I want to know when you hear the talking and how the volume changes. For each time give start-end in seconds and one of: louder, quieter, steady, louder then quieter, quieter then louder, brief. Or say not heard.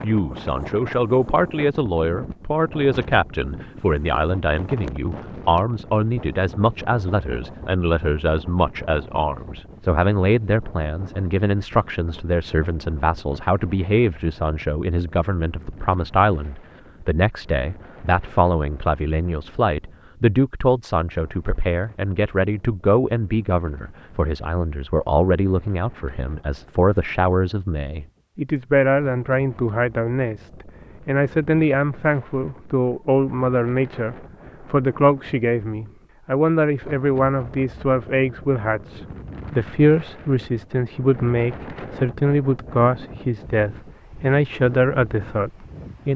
0.0-46.1 steady.